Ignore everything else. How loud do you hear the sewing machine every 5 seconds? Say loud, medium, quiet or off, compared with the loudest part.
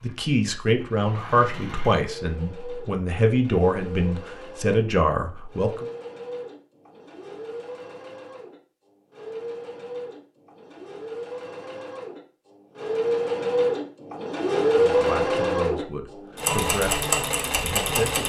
quiet, quiet, loud, loud.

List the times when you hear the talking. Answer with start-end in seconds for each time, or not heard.
0.0-5.8, 14.9-18.2.